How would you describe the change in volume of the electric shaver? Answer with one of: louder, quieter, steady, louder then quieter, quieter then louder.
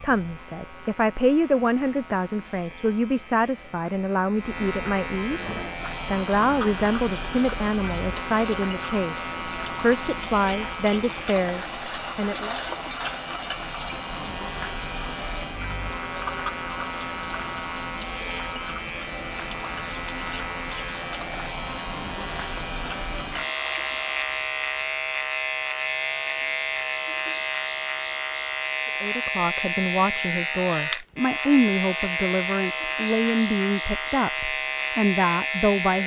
louder.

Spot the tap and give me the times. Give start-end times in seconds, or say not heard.
5.3-24.4.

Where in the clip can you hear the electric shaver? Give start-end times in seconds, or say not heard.
0.0-36.0.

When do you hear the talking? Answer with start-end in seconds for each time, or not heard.
0.0-12.6, 29.0-36.0.